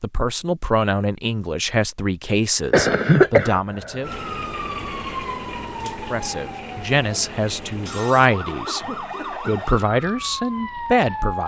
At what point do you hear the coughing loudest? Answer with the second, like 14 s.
3 s.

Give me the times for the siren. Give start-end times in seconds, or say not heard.
4.0-11.4.